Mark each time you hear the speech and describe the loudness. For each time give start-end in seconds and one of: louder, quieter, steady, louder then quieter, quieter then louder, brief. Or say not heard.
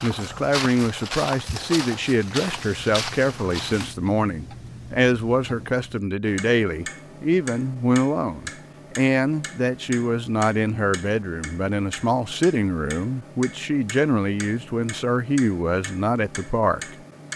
0.0-16.9 steady.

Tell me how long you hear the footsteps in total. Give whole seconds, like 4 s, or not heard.
4 s.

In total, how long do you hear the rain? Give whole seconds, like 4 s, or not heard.
not heard.